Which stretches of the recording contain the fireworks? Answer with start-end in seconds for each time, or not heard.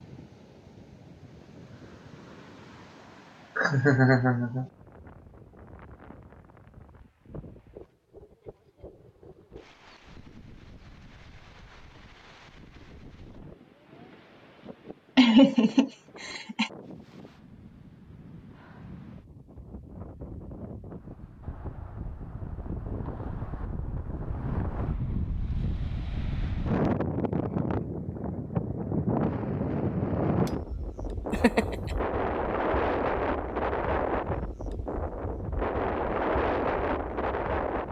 not heard.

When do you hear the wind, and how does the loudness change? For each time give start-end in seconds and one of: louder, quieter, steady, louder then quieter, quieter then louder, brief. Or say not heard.
0.0-37.8 louder.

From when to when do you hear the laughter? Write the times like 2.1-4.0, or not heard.
3.5-4.7, 15.2-16.7, 31.3-31.8.